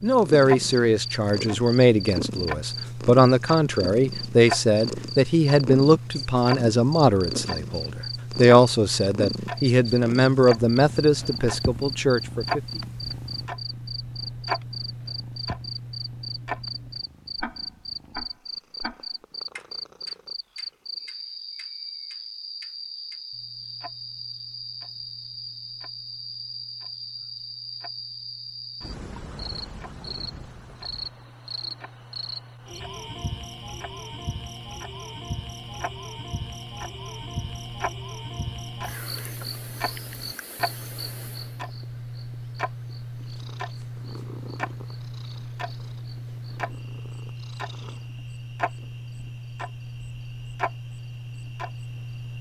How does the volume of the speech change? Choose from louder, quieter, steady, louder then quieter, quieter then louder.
steady.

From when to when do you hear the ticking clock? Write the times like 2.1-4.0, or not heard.
0.0-52.3.